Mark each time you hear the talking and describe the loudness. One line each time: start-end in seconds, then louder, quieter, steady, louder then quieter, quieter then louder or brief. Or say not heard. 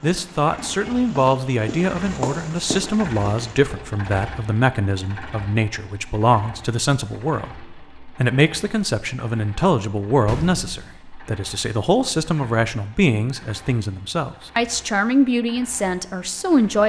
0.0-16.8 steady.